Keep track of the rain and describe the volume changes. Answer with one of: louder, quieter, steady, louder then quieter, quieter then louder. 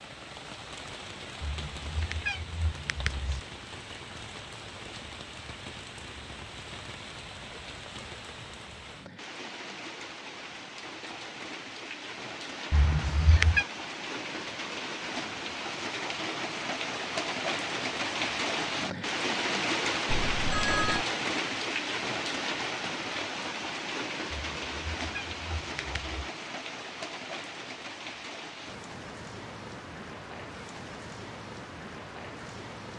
louder then quieter.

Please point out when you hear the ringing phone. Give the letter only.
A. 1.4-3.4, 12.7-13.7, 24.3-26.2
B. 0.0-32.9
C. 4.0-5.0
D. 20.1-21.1
D.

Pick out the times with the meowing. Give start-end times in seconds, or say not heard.
1.4-3.4, 12.7-13.7, 24.3-26.2.